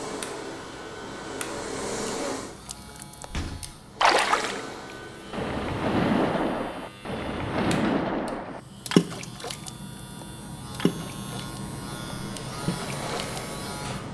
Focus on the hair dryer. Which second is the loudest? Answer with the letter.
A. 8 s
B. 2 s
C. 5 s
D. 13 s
B.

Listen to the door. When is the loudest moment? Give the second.
8 s.